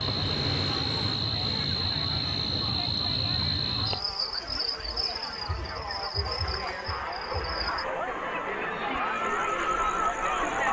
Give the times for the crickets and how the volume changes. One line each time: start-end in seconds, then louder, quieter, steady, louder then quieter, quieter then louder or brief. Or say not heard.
0.0-10.6 quieter.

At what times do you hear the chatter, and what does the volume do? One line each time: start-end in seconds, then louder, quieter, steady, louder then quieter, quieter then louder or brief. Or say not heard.
0.0-10.6 louder.